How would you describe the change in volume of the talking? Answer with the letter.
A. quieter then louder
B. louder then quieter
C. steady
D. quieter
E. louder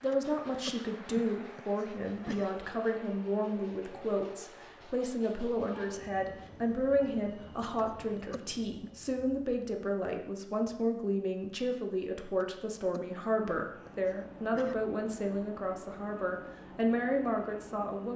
C.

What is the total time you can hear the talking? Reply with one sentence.
You can hear the talking for 18 seconds altogether.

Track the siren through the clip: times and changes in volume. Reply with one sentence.
You can't hear the siren here.